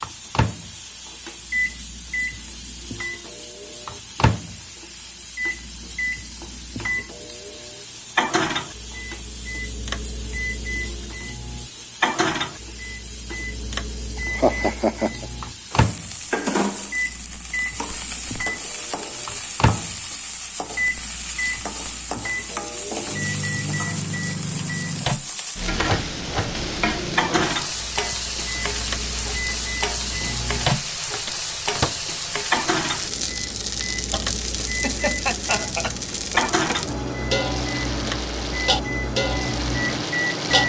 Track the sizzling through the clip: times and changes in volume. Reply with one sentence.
You can hear the sizzling from 0.0 to 40.6 s, getting louder.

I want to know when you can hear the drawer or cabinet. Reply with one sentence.
You can't hear the drawer or cabinet here.